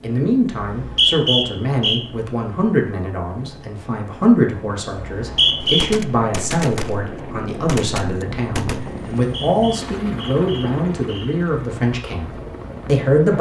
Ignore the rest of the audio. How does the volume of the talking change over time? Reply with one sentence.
The volume of the talking stays about the same.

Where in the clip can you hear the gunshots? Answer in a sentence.
The gunshots can be heard from 5.6 to 9.0 s.